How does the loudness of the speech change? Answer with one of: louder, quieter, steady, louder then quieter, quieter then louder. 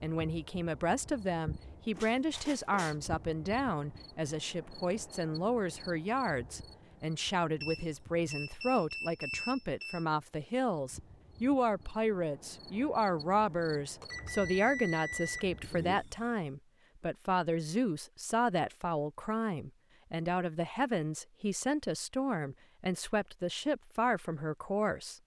steady.